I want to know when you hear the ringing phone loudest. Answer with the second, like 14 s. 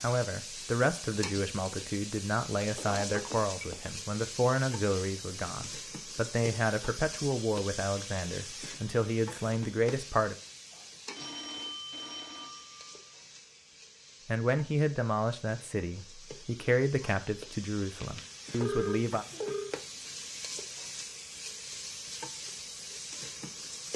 19 s.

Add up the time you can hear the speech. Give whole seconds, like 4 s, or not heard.
15 s.